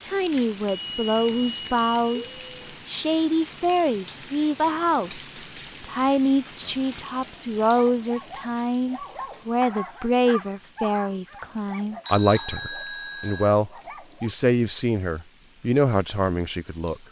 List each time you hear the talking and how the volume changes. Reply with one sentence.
You can hear the talking from 0.0 to 17.0 s, at a steady volume.